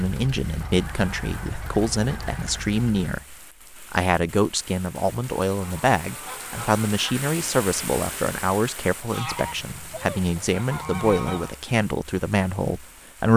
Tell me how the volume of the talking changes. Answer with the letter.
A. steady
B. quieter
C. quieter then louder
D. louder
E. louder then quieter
A.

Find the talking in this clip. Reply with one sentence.
The talking can be heard from 0.0 to 13.3 s.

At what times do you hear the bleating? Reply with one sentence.
The bleating can't be heard in this clip.